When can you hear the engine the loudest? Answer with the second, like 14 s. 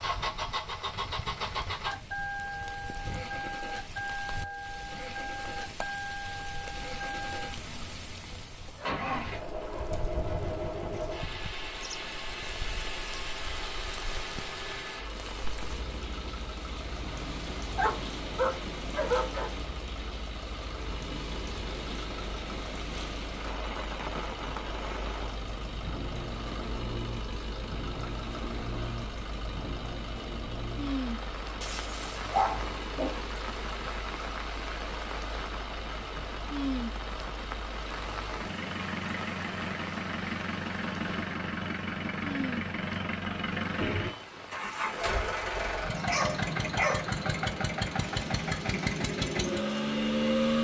50 s.